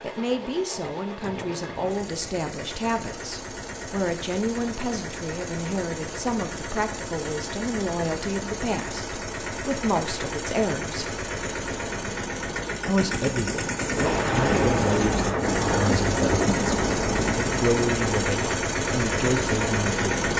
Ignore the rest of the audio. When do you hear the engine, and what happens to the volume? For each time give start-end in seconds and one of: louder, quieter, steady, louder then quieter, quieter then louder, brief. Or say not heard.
0.0-20.3 louder.